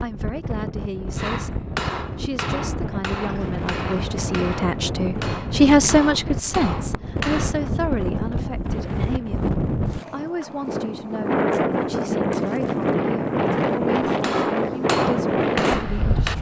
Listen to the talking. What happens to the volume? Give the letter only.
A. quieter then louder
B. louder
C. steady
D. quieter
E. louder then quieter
E.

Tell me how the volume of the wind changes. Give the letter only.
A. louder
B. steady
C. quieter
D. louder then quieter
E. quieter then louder
A.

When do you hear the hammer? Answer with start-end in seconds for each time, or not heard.
1.1-7.5, 14.2-16.3.